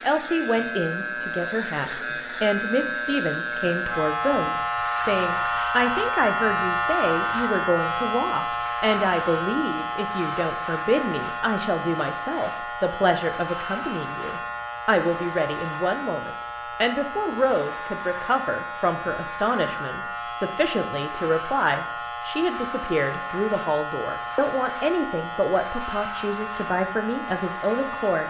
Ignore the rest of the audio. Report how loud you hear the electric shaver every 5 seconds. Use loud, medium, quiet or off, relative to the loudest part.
loud, loud, medium, medium, medium, medium.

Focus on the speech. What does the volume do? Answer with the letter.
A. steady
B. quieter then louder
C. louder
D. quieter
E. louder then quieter
A.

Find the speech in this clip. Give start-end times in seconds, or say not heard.
0.0-28.2.